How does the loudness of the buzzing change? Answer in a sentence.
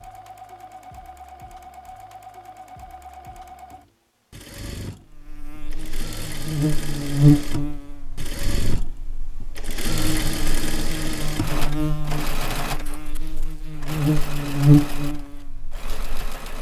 The volume of the buzzing goes down, then up.